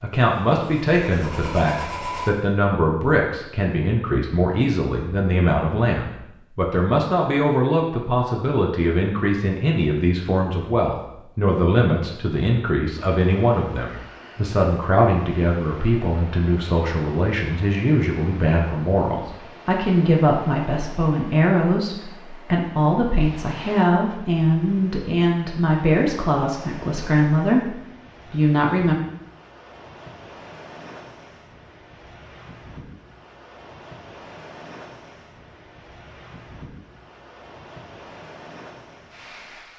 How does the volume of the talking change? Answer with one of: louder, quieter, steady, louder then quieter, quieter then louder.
steady.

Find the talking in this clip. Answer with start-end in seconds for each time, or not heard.
0.0-28.9.